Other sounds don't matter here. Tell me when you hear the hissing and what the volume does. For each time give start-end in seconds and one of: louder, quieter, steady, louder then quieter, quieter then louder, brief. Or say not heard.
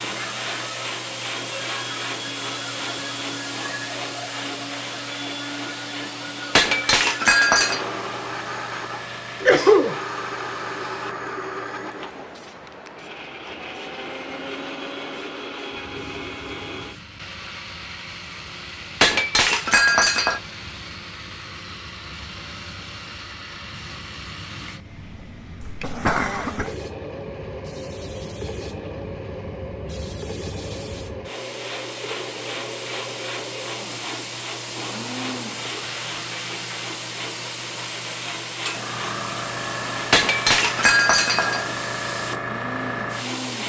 0.0-43.6 quieter then louder.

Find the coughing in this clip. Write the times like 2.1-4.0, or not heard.
9.4-9.9, 25.6-26.8.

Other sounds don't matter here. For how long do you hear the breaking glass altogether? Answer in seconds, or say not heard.
4 s.